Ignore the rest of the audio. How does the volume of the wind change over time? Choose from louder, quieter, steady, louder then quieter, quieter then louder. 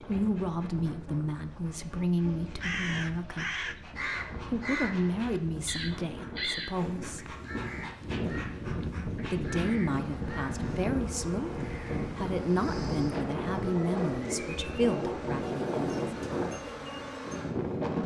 louder.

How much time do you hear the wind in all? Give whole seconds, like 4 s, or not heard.
18 s.